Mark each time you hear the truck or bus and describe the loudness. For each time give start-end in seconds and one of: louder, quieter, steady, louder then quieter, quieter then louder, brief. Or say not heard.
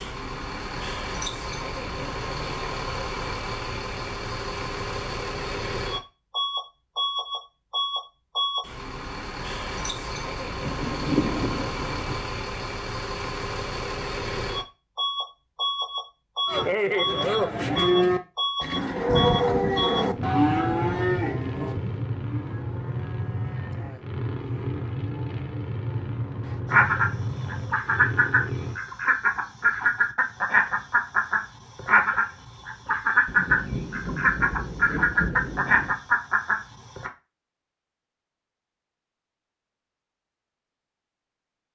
0.0-28.8 steady.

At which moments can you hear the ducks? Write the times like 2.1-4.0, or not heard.
26.7-37.1.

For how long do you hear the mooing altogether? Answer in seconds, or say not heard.
10 s.